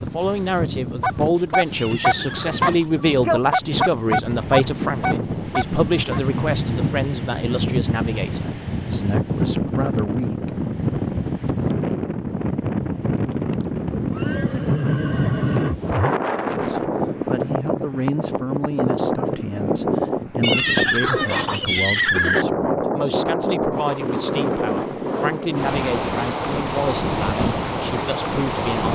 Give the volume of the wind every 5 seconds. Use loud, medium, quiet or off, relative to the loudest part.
medium, loud, loud, loud, loud, loud.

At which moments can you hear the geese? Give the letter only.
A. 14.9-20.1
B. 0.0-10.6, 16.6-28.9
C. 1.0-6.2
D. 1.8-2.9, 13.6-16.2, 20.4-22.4
C.